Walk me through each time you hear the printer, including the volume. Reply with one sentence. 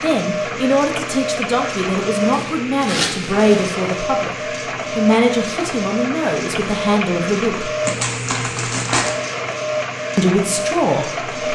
The printer can be heard from 0.0 to 11.4 s, at a steady volume.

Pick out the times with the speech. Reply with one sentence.
You can hear the speech from 0.0 to 7.7 s and from 10.2 to 11.2 s.